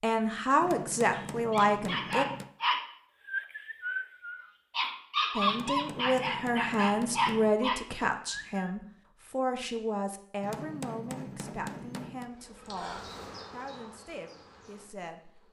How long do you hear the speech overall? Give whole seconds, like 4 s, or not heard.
12 s.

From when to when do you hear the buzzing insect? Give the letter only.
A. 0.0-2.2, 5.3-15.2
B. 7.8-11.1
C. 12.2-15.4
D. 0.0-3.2
C.